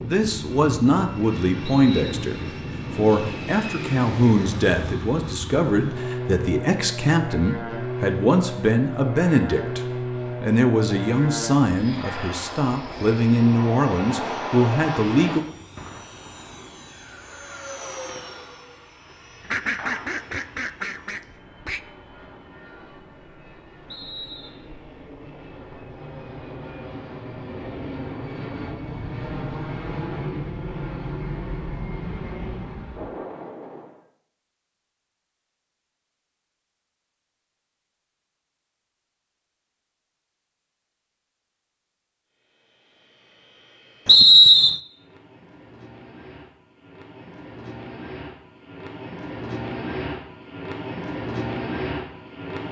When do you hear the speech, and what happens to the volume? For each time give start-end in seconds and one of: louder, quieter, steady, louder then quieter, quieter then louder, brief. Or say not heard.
0.0-15.4 steady.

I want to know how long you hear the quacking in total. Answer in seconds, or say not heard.
2 s.